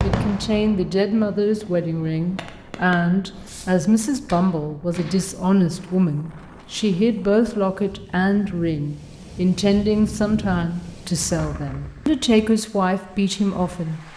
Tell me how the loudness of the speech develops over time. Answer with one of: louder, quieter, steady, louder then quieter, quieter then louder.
steady.